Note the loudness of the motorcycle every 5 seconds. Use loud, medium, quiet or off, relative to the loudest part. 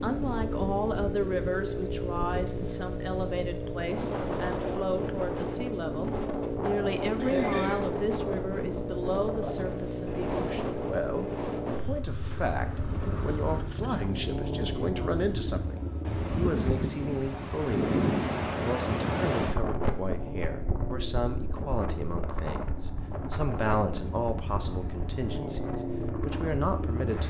loud, loud, loud, loud, medium, loud.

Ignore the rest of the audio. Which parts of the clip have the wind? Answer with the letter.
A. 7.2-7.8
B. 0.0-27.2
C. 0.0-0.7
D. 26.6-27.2
B.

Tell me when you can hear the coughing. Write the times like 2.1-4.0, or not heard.
7.2-7.8.